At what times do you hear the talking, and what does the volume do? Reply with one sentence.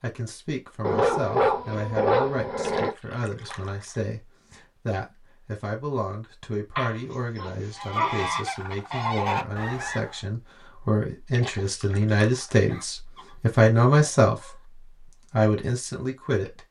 You can hear the talking from 0.0 to 16.6 s, getting louder.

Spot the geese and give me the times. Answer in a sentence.
You can hear the geese from 7.8 to 10.2 s.